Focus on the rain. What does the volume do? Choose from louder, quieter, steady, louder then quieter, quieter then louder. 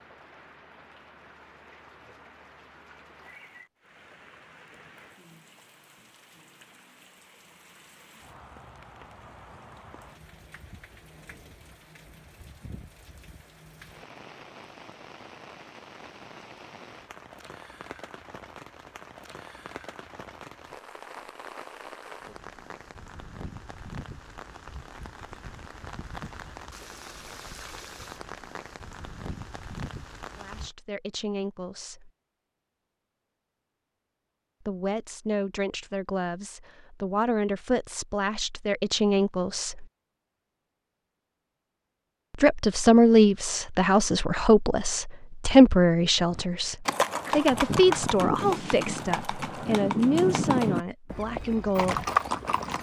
louder.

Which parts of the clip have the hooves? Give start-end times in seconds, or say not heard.
46.3-52.7.